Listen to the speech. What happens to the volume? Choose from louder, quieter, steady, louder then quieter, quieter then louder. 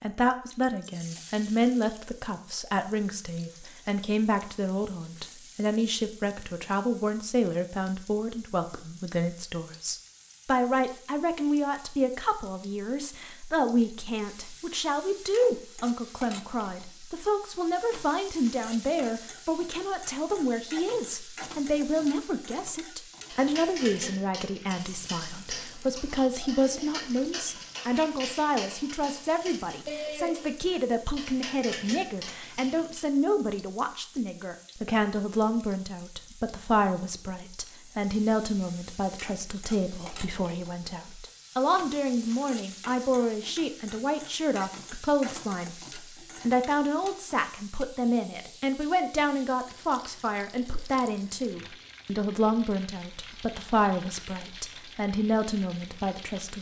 steady.